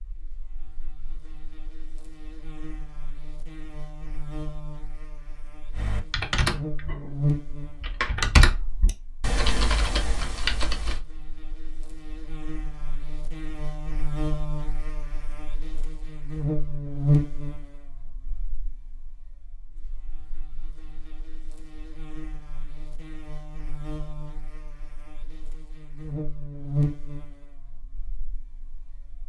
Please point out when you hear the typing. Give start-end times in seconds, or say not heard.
5.7-11.0.